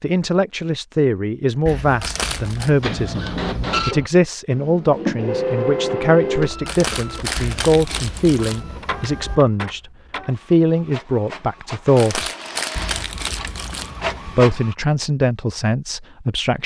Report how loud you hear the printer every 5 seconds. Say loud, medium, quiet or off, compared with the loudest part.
loud, loud, medium, off.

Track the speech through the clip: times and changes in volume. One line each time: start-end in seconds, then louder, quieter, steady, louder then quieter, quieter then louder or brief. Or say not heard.
0.0-12.3 steady
14.2-16.6 brief.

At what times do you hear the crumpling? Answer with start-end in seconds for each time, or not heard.
2.0-2.7, 6.7-8.6, 11.9-13.9.